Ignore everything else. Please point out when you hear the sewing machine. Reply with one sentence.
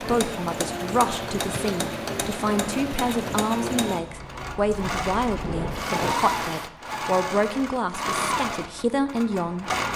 You can hear the sewing machine from 0.0 to 9.9 s.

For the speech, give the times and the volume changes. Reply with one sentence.
You can hear the speech from 0.0 to 9.7 s, at a steady volume.